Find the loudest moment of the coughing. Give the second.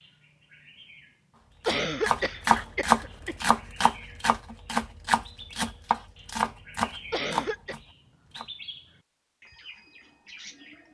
2 s.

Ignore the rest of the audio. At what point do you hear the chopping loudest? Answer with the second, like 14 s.
3 s.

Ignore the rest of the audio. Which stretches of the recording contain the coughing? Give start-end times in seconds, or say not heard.
1.6-3.5, 7.1-7.8.